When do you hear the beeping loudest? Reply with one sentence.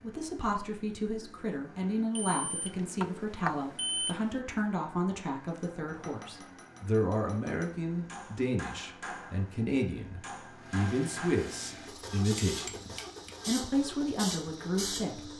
The volume of the beeping peaks at 4 seconds.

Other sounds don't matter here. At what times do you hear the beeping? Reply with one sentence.
The beeping can be heard from 2.1 to 4.4 s.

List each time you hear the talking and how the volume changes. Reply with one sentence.
The talking can be heard from 0.0 to 15.3 s, at a steady volume.